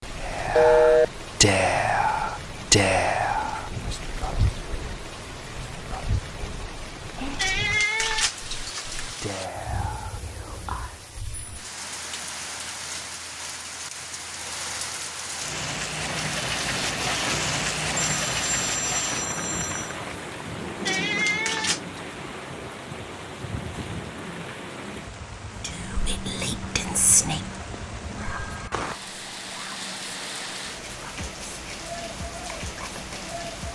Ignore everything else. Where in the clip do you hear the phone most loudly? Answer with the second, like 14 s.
1 s.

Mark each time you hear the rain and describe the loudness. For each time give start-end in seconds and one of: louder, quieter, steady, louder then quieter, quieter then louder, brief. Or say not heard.
0.0-33.7 louder then quieter.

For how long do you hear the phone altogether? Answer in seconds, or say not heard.
3 s.